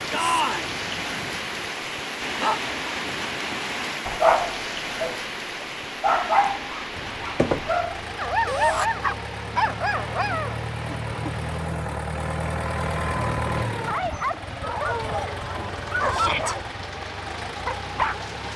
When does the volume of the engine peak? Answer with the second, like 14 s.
13 s.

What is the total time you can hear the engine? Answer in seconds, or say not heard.
13 s.